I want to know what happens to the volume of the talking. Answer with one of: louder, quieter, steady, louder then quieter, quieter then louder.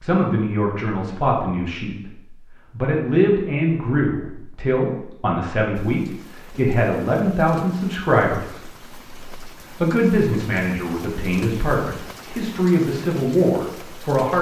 steady.